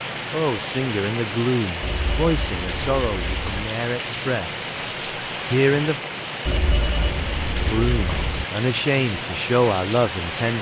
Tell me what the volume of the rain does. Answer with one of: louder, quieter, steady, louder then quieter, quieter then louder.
steady.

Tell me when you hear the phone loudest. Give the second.
7 s.